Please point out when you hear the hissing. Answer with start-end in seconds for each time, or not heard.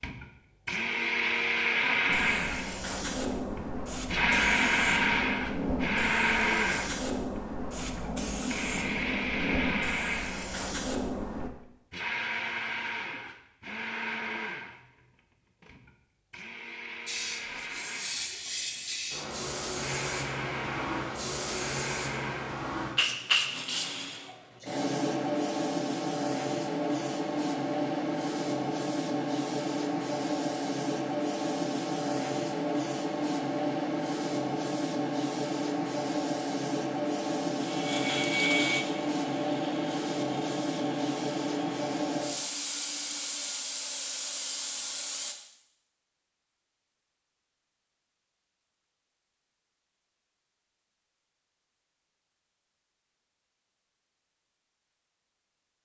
2.0-11.5, 17.1-45.4.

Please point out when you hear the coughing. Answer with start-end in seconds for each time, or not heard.
not heard.